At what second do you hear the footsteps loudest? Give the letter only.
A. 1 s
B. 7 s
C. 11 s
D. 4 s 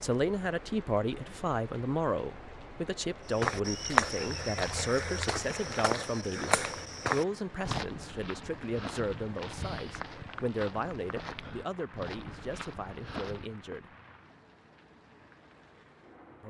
D.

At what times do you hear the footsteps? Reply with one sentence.
You can hear the footsteps from 3.3 to 13.6 s.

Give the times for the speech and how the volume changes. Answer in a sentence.
The speech can be heard from 0.0 to 13.9 s, getting quieter.